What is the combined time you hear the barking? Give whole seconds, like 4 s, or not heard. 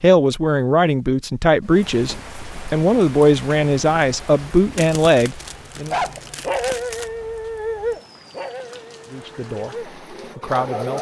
5 s.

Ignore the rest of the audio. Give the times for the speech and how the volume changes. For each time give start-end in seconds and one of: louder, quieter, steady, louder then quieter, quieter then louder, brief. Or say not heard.
0.0-6.0 steady
9.1-10.9 brief.